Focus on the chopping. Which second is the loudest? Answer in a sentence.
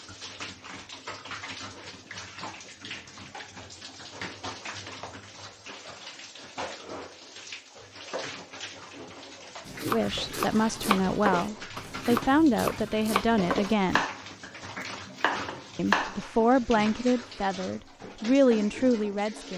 The volume of the chopping peaks at 16 seconds.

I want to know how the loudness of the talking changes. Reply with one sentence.
The loudness of the talking stays about the same.